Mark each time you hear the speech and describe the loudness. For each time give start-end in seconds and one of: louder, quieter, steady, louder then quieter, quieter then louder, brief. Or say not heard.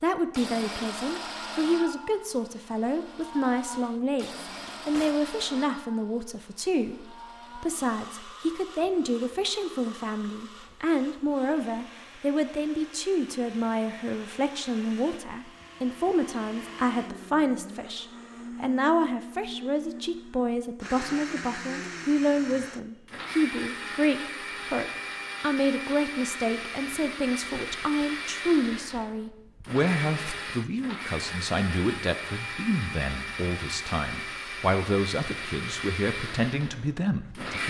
0.0-37.6 steady.